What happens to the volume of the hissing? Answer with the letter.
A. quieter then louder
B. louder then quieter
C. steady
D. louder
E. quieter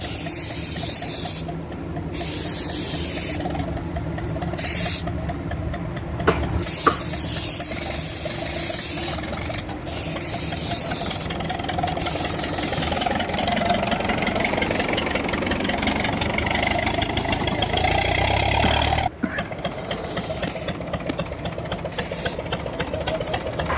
E.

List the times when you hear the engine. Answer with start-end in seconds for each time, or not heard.
0.1-23.7.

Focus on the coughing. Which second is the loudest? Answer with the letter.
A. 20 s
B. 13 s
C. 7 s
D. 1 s
C.